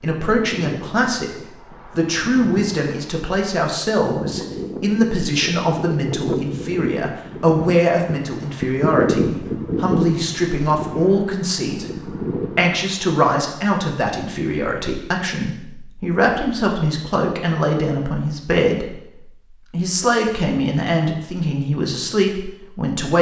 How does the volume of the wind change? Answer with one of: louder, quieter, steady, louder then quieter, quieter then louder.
louder then quieter.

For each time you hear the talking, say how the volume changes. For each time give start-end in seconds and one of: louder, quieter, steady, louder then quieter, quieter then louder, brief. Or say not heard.
0.0-1.3 brief
1.9-23.1 steady.